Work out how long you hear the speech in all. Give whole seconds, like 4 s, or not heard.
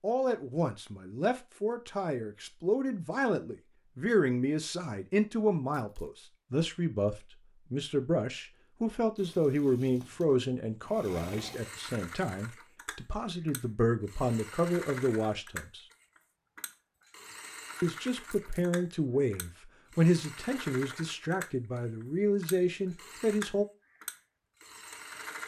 22 s.